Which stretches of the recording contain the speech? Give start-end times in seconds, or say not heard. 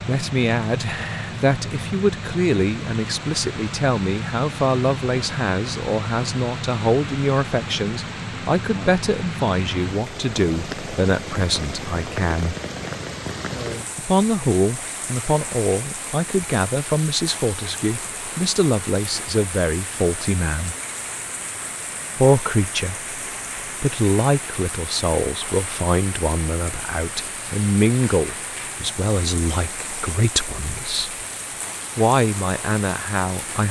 0.1-12.6, 13.9-20.8, 22.1-23.0, 23.8-31.2, 31.9-33.6.